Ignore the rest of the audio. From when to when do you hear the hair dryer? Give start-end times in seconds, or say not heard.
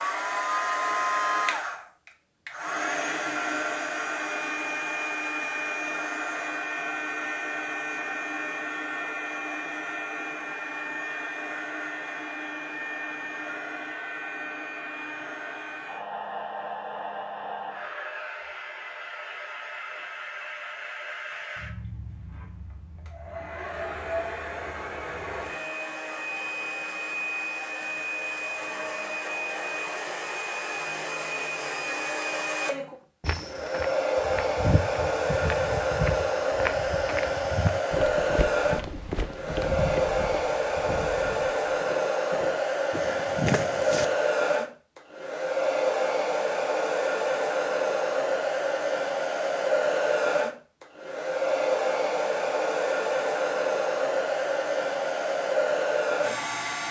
0.0-56.8.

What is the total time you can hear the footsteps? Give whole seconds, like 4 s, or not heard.
11 s.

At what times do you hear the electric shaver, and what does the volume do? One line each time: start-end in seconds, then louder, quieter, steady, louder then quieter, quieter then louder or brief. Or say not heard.
not heard.